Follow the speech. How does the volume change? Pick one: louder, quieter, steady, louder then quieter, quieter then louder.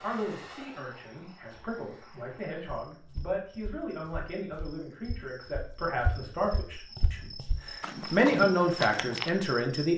louder.